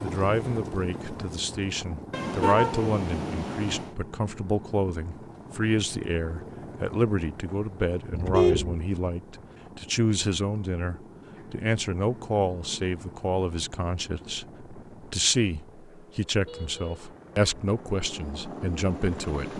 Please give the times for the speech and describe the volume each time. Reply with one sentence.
The speech can be heard from 0.0 to 19.5 s, at a steady volume.